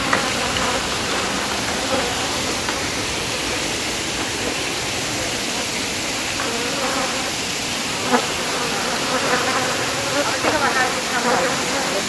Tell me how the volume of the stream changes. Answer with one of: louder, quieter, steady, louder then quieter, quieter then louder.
steady.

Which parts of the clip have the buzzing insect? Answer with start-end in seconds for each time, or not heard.
0.0-12.0.